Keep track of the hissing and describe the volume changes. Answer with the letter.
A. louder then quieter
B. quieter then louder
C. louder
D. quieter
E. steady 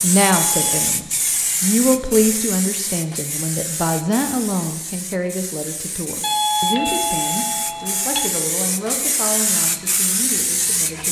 B.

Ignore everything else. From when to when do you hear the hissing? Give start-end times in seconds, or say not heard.
0.0-11.0.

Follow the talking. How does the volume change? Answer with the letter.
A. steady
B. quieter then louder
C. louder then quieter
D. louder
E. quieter
E.